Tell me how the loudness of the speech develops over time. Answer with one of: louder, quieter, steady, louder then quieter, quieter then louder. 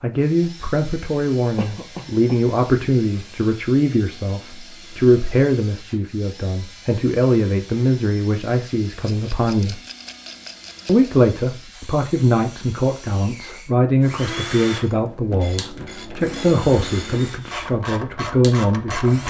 steady.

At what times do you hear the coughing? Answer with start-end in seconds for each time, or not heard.
1.6-2.4.